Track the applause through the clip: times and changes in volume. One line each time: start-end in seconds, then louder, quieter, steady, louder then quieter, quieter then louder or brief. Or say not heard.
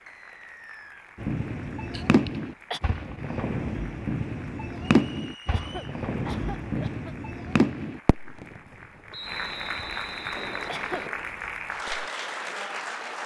0.0-13.2 louder.